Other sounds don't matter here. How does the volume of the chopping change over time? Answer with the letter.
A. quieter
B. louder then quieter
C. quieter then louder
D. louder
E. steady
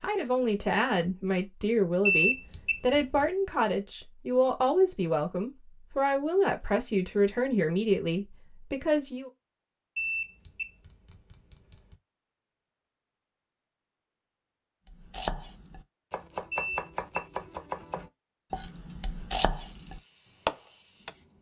D.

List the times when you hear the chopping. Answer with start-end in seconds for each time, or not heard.
14.9-21.1.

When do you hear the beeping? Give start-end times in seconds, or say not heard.
2.0-3.3, 9.9-11.9, 16.5-17.2.